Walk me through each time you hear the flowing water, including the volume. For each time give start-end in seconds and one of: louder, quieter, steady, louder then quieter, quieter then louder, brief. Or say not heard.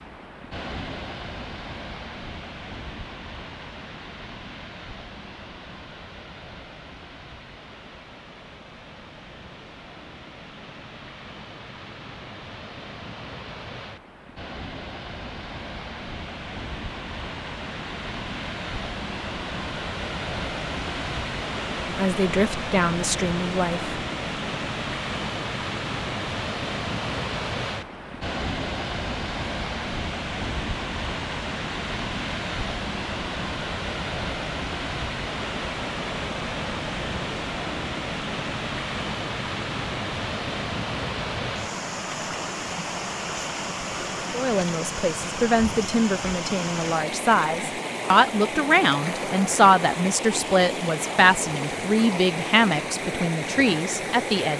0.0-54.5 louder.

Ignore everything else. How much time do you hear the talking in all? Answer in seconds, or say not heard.
12 s.